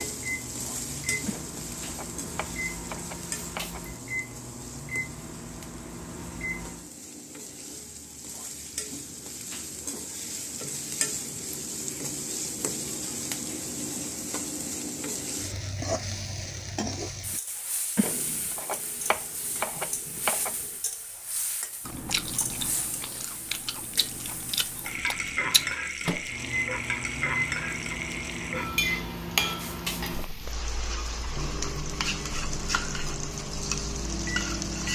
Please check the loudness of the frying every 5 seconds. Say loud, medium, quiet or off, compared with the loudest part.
medium, medium, loud, medium, medium, loud, loud.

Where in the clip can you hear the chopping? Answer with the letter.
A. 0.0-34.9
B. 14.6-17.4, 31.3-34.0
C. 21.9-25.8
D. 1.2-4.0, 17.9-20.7
D.